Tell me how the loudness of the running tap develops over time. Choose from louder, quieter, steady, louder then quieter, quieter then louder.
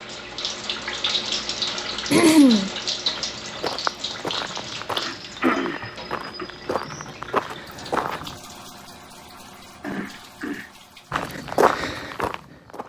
quieter.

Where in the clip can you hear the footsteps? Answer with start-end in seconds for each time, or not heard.
3.0-8.3, 11.1-12.8.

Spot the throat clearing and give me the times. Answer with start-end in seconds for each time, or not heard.
2.1-2.7, 5.0-6.5, 9.8-11.2.